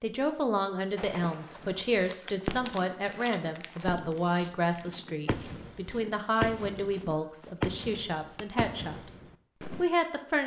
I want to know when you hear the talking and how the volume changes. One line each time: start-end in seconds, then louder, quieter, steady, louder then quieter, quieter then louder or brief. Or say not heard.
0.0-10.4 steady.